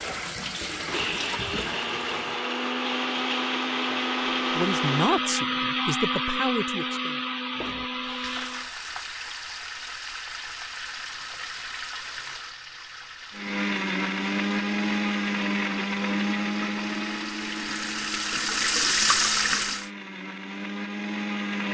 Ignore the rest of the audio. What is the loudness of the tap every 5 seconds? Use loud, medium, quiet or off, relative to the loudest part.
medium, medium, medium, loud, off.